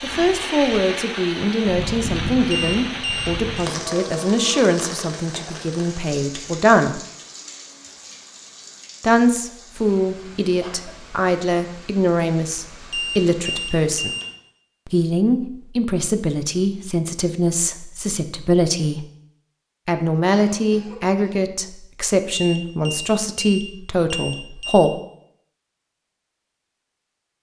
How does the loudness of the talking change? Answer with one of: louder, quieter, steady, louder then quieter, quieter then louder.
steady.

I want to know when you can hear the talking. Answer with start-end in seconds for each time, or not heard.
0.0-7.0, 9.0-14.2, 14.8-19.1, 19.9-24.9.